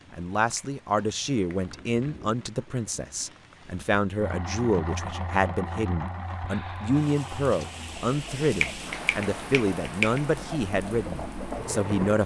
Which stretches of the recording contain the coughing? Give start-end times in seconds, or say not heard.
not heard.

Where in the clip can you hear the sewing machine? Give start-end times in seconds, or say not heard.
4.2-12.2.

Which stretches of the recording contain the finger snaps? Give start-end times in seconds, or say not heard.
0.6-1.6, 8.6-10.2.